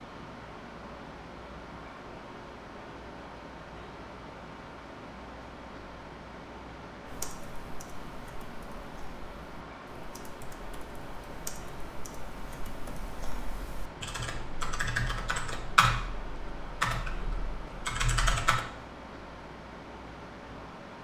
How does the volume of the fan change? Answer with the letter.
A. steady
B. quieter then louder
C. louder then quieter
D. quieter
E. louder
A.